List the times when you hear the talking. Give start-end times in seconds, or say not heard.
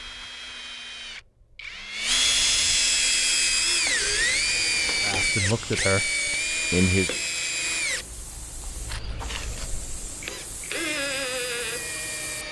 5.0-7.2.